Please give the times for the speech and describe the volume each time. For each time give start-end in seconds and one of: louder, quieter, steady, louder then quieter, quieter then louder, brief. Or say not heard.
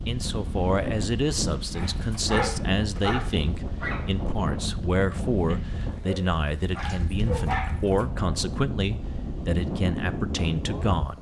0.1-11.1 steady.